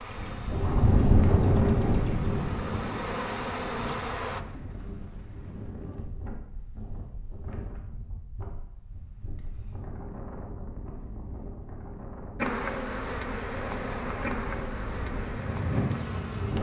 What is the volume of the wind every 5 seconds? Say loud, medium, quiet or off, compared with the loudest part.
loud, quiet, quiet, loud.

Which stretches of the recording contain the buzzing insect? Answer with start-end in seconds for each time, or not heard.
0.0-4.5, 12.3-16.5.